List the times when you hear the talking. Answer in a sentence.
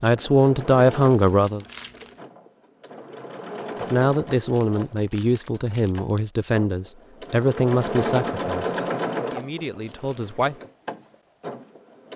The talking can be heard from 0.0 to 1.6 s and from 3.8 to 10.6 s.